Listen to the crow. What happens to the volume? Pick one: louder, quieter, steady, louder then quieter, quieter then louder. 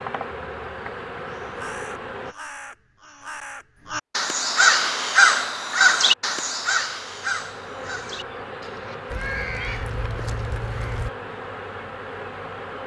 louder then quieter.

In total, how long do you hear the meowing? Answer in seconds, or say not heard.
2 s.